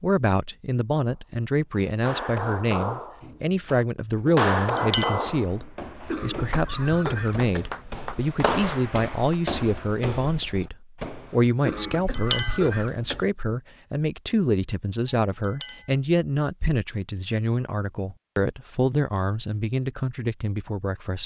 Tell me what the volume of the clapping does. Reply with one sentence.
The volume of the clapping goes up, then down.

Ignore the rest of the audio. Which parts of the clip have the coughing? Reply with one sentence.
The coughing can be heard from 6.0 to 7.7 s and from 11.6 to 13.2 s.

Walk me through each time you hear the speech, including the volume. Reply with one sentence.
The speech can be heard from 0.0 to 21.2 s, at a steady volume.